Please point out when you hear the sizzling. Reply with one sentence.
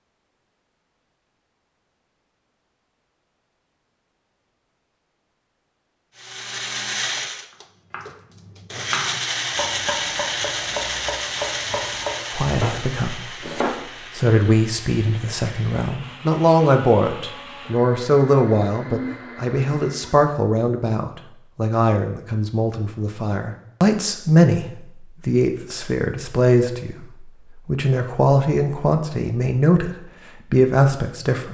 You can't hear the sizzling here.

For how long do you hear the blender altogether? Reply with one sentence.
You can hear the blender for 14 seconds altogether.